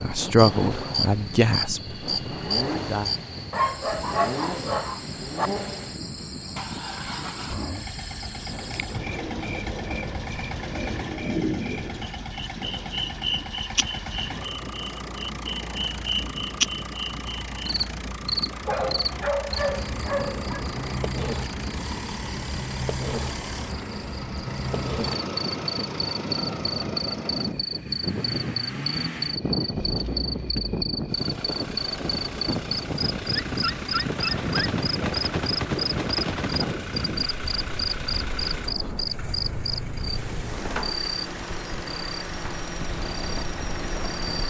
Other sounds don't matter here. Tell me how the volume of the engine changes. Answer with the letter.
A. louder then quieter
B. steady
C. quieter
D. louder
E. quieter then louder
B.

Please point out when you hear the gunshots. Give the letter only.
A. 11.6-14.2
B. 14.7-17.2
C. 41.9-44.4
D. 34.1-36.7
D.